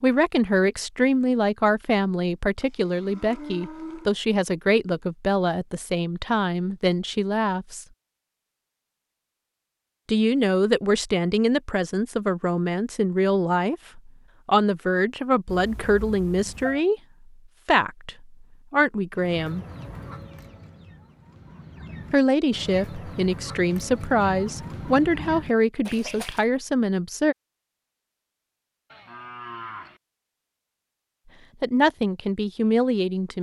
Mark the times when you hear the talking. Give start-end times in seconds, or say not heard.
0.0-7.8, 10.1-17.0, 17.6-19.6, 22.1-27.4, 31.6-33.3.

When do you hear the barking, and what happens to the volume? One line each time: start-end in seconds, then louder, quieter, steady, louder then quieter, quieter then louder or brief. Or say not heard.
not heard.